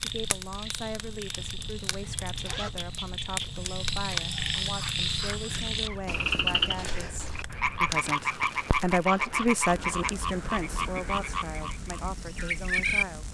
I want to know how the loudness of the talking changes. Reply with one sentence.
The loudness of the talking goes up, then down.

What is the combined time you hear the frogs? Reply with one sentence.
The frogs can be heard for 13 seconds in total.